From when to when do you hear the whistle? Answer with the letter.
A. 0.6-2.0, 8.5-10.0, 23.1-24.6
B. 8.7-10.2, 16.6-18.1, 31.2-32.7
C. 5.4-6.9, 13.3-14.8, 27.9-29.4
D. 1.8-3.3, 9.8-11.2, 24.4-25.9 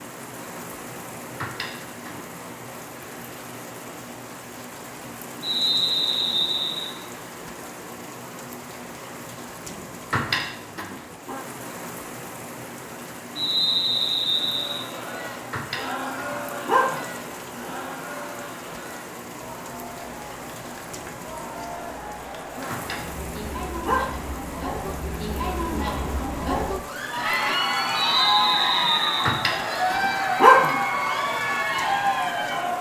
C.